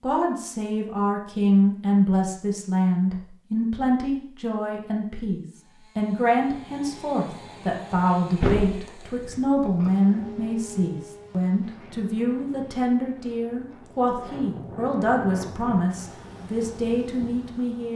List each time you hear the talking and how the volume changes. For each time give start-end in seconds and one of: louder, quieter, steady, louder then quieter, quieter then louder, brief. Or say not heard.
0.0-17.9 steady.